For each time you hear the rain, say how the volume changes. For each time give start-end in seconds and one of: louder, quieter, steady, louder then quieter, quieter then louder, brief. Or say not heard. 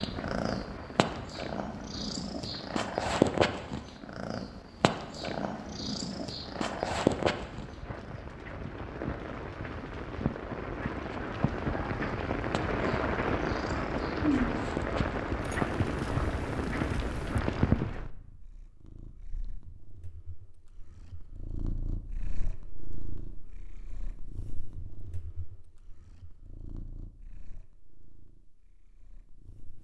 0.0-18.1 louder.